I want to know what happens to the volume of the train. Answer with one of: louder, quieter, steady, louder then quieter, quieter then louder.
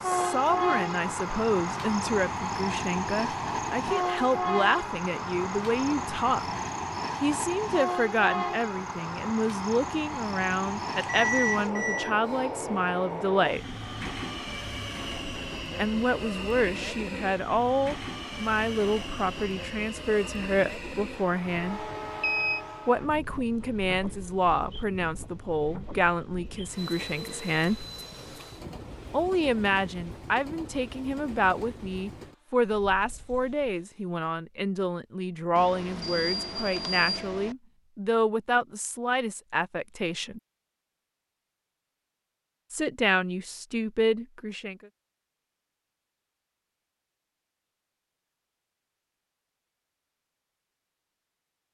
quieter.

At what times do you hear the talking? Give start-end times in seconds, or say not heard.
0.1-6.5, 7.2-13.7, 15.8-21.9, 22.9-27.9, 29.1-40.4, 42.7-44.8.